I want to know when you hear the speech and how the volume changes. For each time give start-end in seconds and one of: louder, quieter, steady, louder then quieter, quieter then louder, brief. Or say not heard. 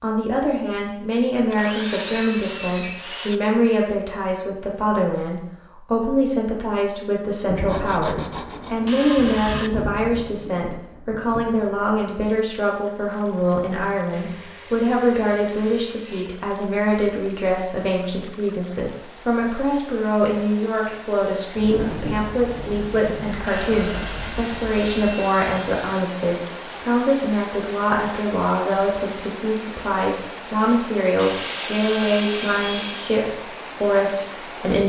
0.0-34.8 steady.